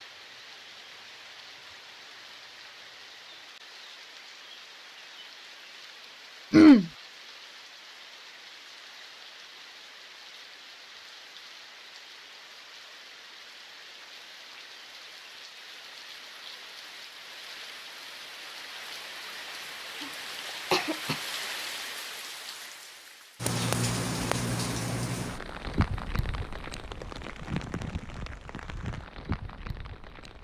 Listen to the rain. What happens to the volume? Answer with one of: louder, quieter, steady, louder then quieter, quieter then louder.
louder.